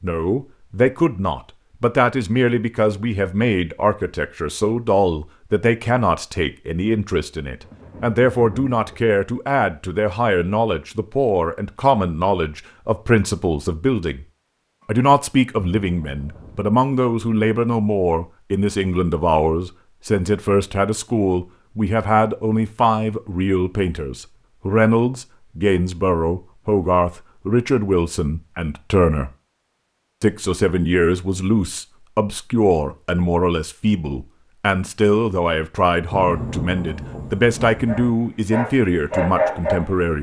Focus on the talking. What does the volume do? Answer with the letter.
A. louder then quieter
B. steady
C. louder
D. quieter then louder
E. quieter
B.